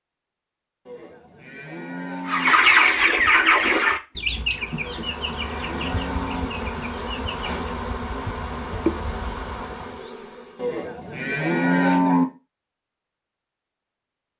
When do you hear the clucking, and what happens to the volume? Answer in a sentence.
The clucking can be heard from 2.2 to 7.7 s, getting quieter.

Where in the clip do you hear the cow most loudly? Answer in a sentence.
The loudest moment of the cow is at 12 seconds.